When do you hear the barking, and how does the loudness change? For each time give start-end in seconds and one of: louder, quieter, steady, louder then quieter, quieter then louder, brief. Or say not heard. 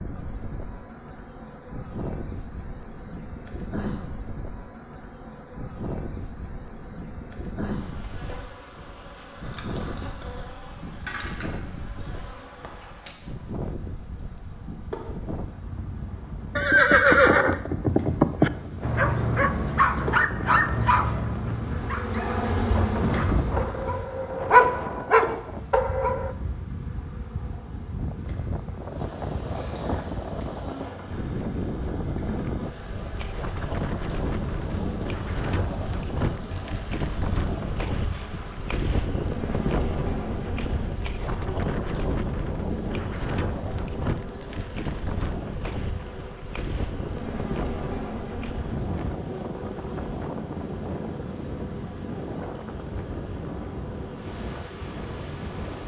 18.8-26.4 quieter then louder.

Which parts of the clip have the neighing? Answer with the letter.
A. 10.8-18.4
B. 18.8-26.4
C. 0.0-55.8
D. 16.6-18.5
D.